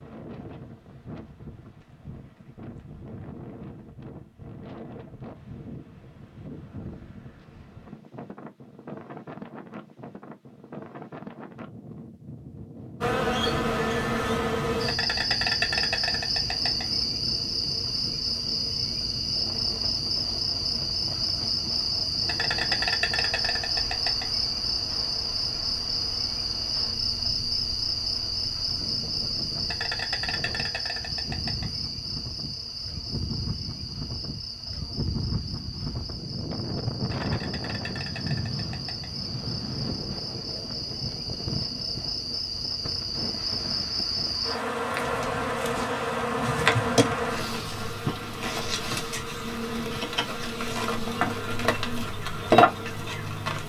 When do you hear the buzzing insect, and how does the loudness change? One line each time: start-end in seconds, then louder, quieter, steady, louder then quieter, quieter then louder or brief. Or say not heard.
13.0-53.6 quieter then louder.